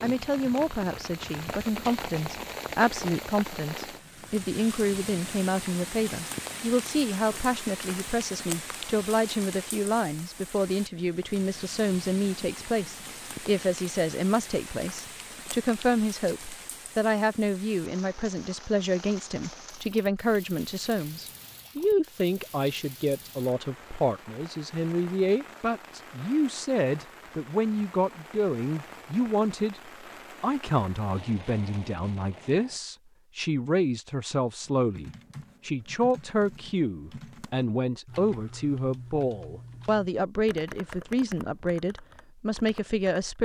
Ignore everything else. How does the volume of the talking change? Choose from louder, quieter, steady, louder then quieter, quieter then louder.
steady.